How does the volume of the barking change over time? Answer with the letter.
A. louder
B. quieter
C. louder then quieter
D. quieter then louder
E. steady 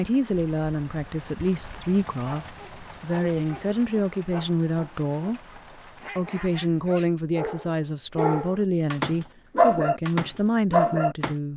A.